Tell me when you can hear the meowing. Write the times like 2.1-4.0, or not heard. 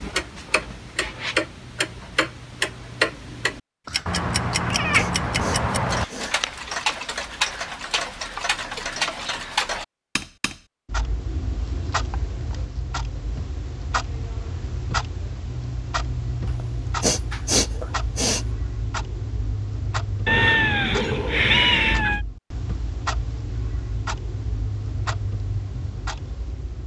4.0-6.0, 20.2-22.2.